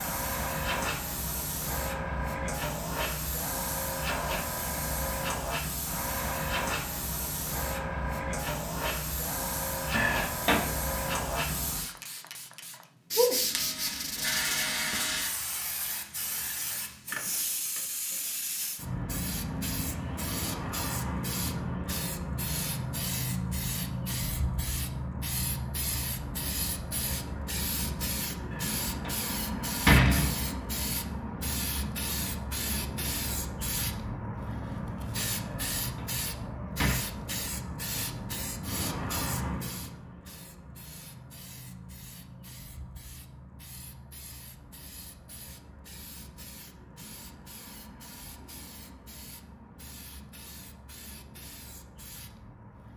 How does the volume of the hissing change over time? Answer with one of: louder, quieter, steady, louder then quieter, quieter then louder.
quieter.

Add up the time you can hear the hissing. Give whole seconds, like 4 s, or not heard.
53 s.